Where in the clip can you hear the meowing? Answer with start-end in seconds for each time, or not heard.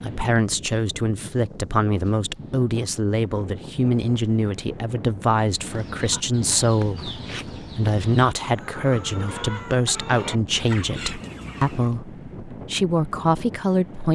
not heard.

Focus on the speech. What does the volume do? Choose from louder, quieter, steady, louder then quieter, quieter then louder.
steady.